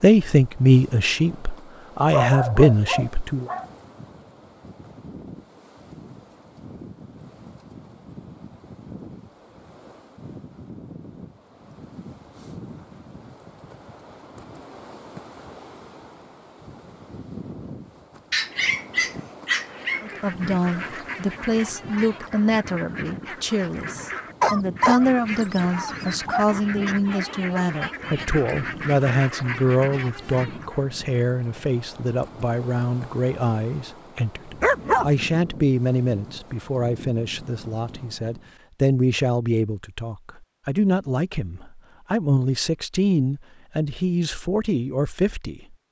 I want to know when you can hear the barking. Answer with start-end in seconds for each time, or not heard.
2.1-3.6, 18.3-20.1, 24.4-26.4, 34.6-35.1.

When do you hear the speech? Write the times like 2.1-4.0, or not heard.
0.0-3.5, 20.0-45.8.